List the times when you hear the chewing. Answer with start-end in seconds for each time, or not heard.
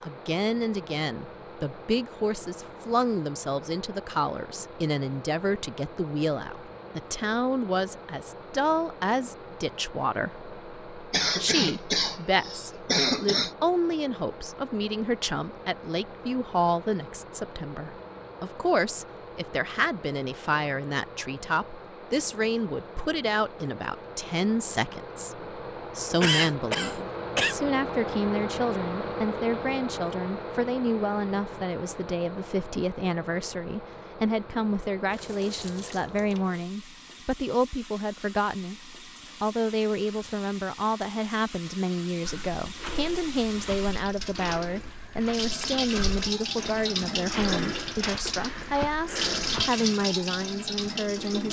not heard.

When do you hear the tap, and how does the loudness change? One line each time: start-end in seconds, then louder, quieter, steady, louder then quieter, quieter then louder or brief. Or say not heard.
35.0-51.4 louder.